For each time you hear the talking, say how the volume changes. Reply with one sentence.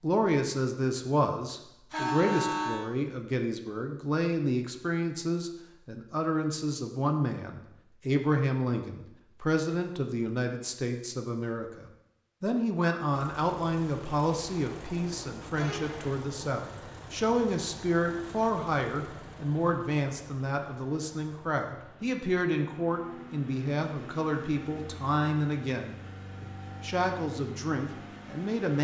The talking can be heard from 0.0 to 28.7 s, at a steady volume.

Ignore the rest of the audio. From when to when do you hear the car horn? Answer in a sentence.
You can hear the car horn from 1.9 to 2.9 s and from 15.5 to 16.1 s.